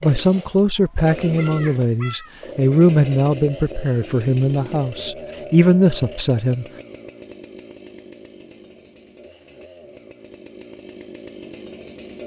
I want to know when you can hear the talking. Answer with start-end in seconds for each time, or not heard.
0.0-6.7.